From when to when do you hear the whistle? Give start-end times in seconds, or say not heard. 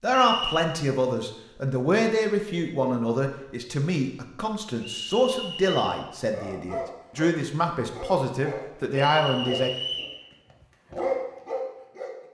0.1-0.7, 4.8-5.8, 9.1-10.2.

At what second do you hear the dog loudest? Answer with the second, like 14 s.
11 s.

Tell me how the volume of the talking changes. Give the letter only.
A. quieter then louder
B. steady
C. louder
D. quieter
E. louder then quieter
B.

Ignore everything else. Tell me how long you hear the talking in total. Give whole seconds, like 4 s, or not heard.
10 s.